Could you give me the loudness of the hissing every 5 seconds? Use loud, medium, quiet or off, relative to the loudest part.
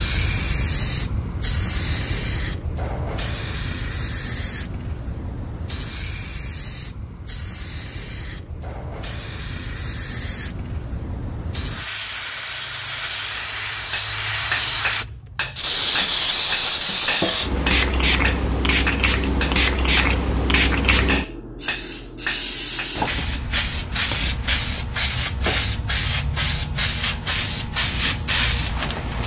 medium, quiet, medium, loud, loud, loud.